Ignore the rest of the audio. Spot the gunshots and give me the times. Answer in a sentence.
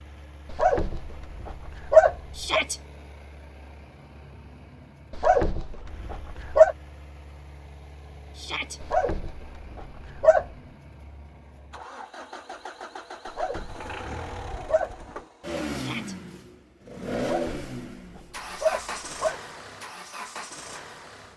You can't hear the gunshots here.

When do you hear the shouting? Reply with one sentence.
You can hear the shouting from 2.4 to 2.8 s, from 8.3 to 8.8 s and from 15.7 to 16.1 s.